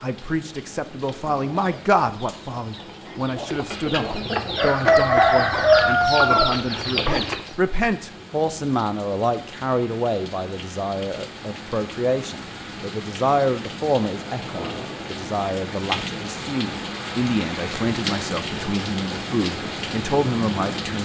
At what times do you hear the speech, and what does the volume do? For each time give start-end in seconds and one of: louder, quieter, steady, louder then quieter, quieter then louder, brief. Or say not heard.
0.0-21.0 steady.